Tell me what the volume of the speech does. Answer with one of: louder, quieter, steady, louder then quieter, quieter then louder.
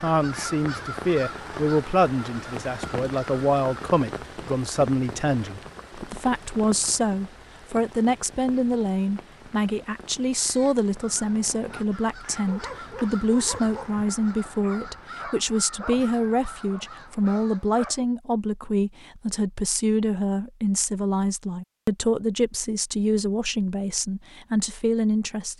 steady.